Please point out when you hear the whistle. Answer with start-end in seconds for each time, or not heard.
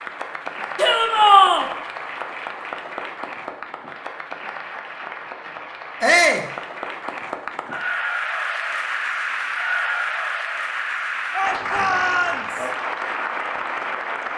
not heard.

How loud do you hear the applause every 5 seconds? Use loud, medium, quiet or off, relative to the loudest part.
medium, loud, loud.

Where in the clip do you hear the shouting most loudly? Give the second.
1 s.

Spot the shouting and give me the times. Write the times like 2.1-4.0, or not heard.
0.8-1.6, 6.0-6.5, 11.3-12.7.